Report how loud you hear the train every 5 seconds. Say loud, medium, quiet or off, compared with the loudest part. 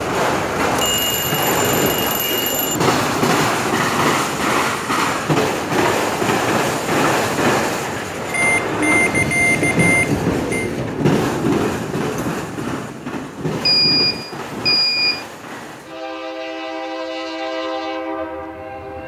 loud, loud, loud, medium.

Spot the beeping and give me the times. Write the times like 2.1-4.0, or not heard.
0.8-2.8, 8.2-10.7, 13.6-15.2.